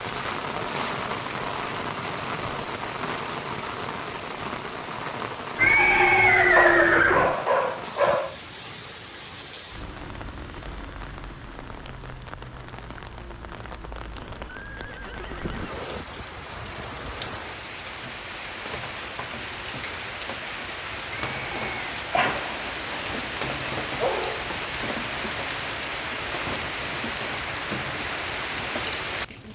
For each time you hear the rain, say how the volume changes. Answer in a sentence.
The rain can be heard from 0.0 to 29.5 s, getting quieter then louder.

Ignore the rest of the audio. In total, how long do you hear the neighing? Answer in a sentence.
You can hear the neighing for 5 seconds altogether.